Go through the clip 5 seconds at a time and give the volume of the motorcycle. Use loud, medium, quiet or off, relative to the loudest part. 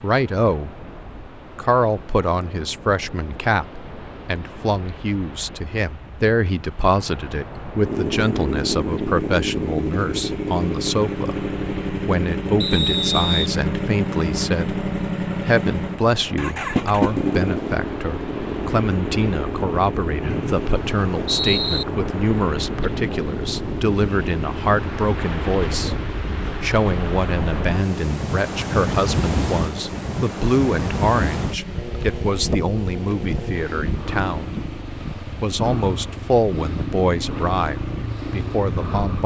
off, loud, loud, loud, medium, medium, medium, medium.